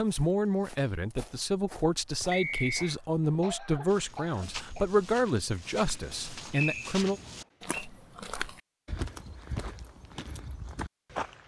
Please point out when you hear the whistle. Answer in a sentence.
The whistle can be heard from 2.3 to 3.0 s and from 6.5 to 7.8 s.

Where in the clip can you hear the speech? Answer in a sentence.
The speech can be heard from 0.0 to 7.2 s.